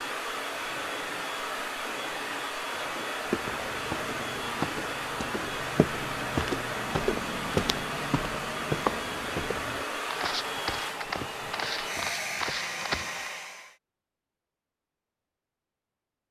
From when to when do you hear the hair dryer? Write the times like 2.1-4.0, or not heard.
0.0-13.8.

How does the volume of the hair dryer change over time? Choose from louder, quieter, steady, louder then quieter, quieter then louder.
steady.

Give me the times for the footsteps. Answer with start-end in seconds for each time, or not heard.
3.2-13.3.